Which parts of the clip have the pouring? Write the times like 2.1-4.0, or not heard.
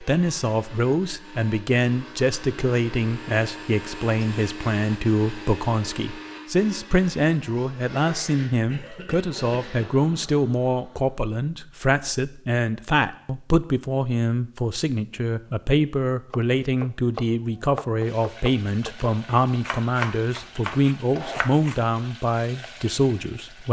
not heard.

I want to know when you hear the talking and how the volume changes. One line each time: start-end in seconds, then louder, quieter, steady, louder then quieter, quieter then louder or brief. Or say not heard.
0.0-23.6 steady.